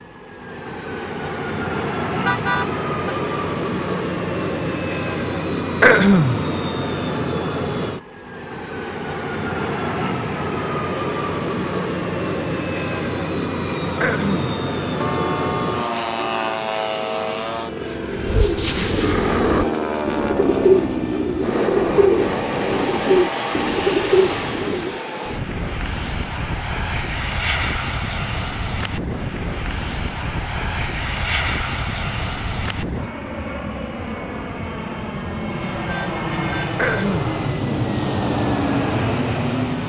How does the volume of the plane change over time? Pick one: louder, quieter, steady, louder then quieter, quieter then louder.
steady.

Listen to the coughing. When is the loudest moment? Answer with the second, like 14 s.
6 s.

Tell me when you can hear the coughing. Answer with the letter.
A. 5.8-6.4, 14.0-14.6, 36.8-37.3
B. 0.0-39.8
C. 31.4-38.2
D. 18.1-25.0
A.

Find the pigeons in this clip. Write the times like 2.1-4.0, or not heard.
18.1-25.0.